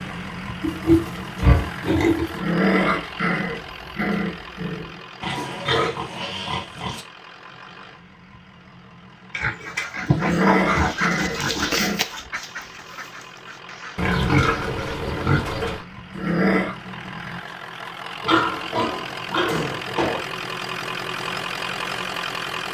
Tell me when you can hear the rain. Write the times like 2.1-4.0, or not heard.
not heard.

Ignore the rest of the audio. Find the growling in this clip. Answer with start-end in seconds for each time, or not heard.
2.3-5.0, 10.2-12.1, 16.1-16.8.